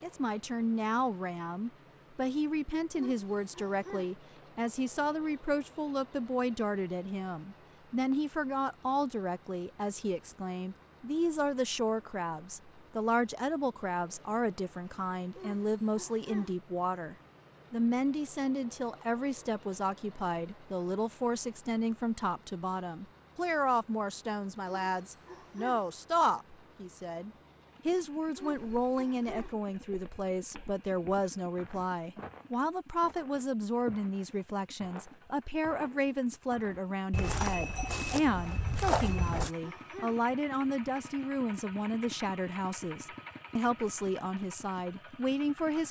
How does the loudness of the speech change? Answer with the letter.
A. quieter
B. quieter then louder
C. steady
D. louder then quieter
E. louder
C.